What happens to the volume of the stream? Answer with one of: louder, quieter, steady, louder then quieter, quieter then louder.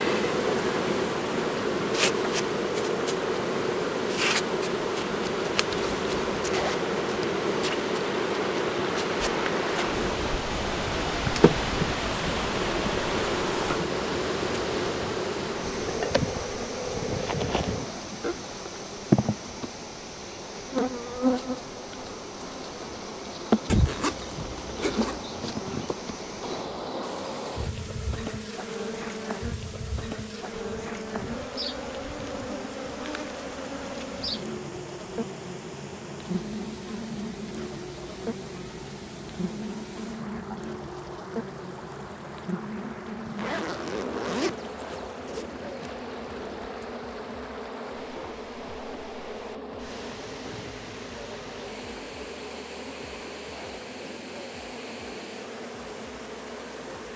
quieter.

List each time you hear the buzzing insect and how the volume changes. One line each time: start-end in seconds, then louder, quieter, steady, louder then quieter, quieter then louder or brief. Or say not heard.
0.0-57.1 quieter.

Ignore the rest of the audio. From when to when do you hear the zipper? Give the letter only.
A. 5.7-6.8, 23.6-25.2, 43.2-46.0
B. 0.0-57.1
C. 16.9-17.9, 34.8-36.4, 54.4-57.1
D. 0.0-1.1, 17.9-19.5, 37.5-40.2
A.